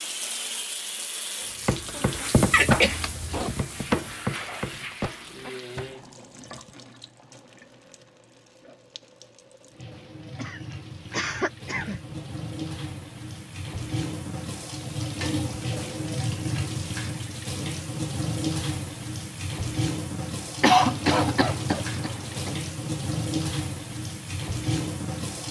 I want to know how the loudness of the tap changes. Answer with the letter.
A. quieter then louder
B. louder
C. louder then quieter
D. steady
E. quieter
A.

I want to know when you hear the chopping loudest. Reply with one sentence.
The volume of the chopping peaks at 3 seconds.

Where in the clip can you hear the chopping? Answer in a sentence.
The chopping can be heard from 1.6 to 6.8 s.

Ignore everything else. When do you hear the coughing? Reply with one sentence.
The coughing can be heard from 2.5 to 3.5 s, from 10.3 to 12.2 s and from 20.6 to 22.5 s.